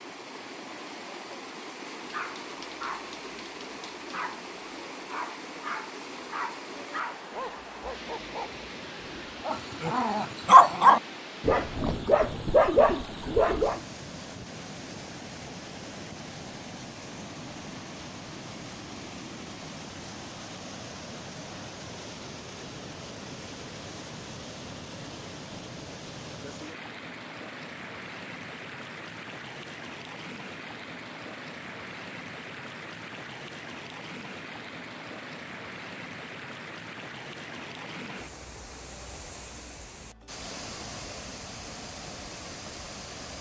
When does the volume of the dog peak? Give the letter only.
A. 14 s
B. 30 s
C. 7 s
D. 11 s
D.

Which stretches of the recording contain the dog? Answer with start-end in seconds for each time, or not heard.
1.9-13.8.